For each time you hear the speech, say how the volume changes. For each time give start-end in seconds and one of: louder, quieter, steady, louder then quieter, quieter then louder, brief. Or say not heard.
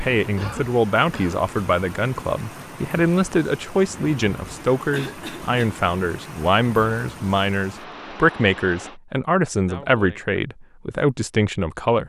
0.0-12.0 steady.